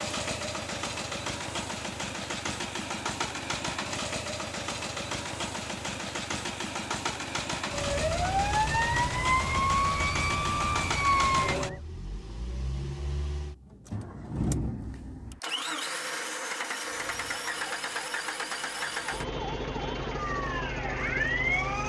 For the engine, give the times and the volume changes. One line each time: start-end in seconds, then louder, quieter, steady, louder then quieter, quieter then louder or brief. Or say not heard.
0.0-21.8 steady.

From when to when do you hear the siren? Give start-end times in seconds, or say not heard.
7.7-11.8, 16.8-21.8.